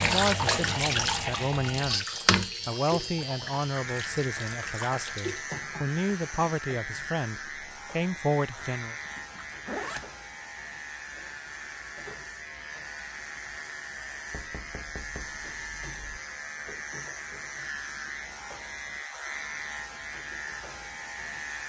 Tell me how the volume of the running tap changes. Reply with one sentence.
The loudness of the running tap goes down.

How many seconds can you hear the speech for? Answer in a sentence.
The speech can be heard for 9 seconds in total.